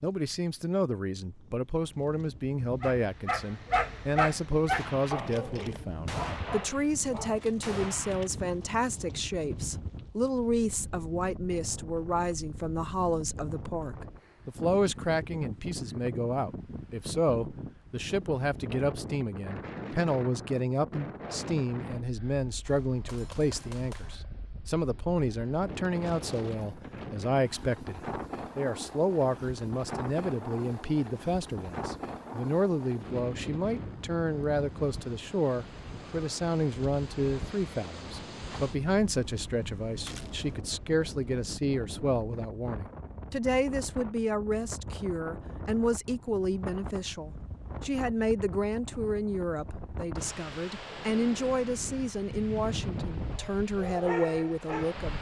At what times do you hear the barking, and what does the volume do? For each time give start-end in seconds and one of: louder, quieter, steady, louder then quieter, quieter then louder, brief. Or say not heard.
2.8-8.0 quieter
53.3-55.0 brief.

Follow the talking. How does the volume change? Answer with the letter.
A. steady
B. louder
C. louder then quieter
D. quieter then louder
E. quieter
A.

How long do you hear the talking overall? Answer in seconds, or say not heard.
55 s.